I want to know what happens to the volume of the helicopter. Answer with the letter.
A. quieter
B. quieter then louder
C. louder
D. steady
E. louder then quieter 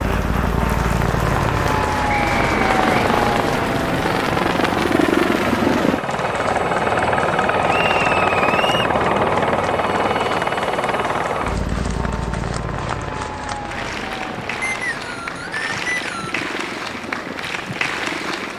A.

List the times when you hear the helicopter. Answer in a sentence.
You can hear the helicopter from 0.0 to 18.5 s.